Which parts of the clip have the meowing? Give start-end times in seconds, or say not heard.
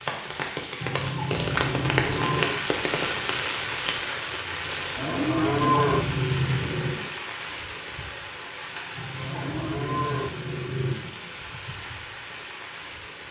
not heard.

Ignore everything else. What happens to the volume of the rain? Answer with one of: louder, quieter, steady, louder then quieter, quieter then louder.
quieter.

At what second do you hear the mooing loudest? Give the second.
6 s.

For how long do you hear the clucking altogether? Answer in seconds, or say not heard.
5 s.